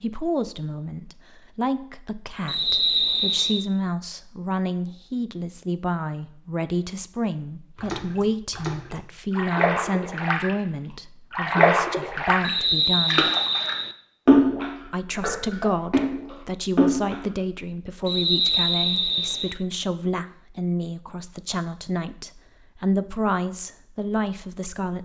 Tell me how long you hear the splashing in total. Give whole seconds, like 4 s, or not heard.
9 s.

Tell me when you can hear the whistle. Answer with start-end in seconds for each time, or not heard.
2.5-3.6, 12.4-13.9, 18.1-19.6.